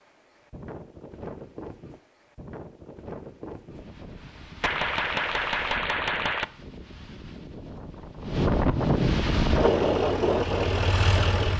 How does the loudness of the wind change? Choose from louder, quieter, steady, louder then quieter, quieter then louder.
louder.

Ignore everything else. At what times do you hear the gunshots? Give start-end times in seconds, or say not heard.
4.6-6.5.